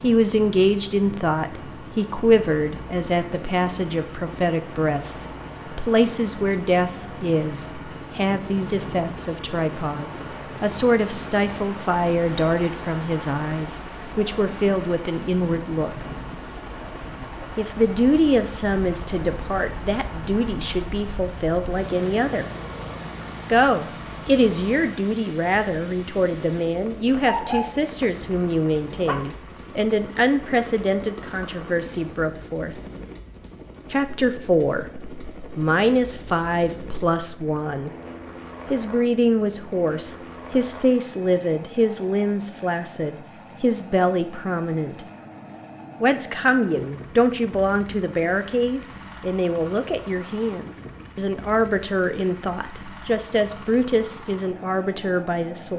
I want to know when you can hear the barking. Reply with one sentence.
The barking can be heard from 27.2 to 29.2 s.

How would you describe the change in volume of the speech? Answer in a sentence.
The loudness of the speech stays about the same.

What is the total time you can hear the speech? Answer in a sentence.
You can hear the speech for 50 seconds altogether.